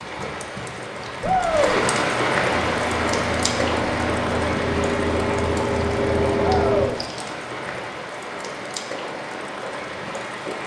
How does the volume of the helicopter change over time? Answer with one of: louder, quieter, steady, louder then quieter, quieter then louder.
louder.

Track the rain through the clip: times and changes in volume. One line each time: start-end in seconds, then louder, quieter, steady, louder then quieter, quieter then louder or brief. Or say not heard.
0.0-10.6 quieter.